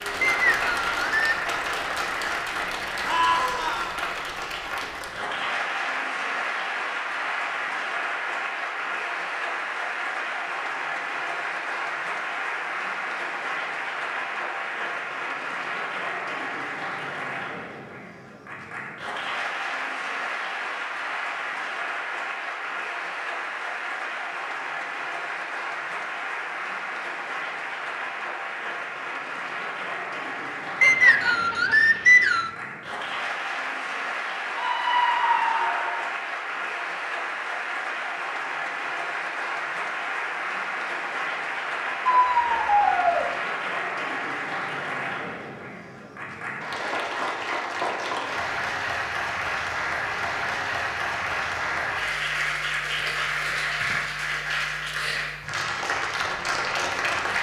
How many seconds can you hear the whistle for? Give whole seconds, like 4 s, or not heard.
3 s.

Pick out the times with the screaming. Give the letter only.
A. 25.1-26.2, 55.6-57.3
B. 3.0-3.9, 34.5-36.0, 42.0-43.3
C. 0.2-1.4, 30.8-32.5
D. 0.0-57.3
B.